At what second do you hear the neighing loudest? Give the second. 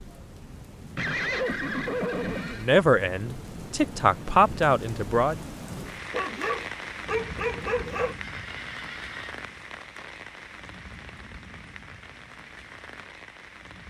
1 s.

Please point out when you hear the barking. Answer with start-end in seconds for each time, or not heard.
6.1-8.2.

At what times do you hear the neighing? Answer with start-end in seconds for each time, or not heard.
0.9-2.8, 8.2-9.4.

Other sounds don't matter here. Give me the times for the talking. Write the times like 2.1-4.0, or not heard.
2.5-5.3.